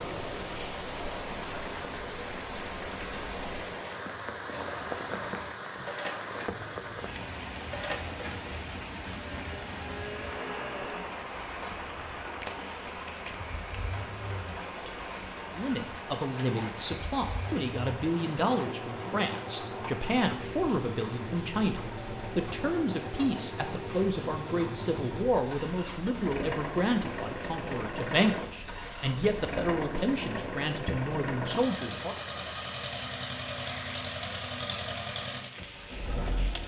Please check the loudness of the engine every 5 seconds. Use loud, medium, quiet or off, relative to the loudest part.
medium, medium, medium, medium, loud, loud, loud, loud.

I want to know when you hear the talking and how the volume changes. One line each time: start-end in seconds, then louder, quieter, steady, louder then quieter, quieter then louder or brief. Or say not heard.
15.6-32.1 steady.